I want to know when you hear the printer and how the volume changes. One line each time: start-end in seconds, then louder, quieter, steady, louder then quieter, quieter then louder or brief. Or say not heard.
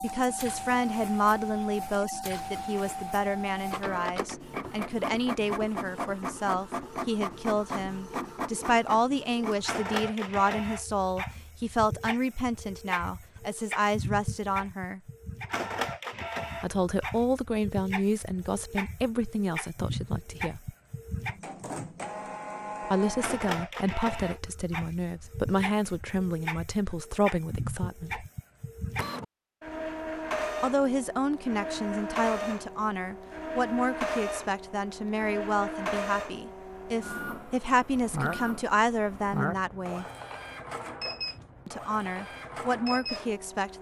0.0-43.7 steady.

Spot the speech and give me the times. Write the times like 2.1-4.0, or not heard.
0.0-15.0, 16.6-20.7, 22.9-28.2, 30.6-40.0, 41.6-43.7.